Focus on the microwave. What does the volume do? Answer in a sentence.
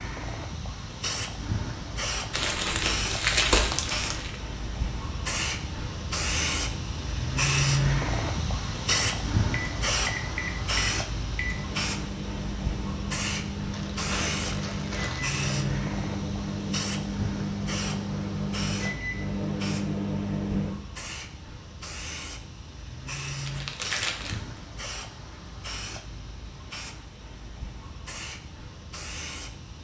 The volume of the microwave goes up.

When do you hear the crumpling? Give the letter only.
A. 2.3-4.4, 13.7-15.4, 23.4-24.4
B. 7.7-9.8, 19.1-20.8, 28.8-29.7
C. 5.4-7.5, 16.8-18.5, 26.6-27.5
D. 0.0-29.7
A.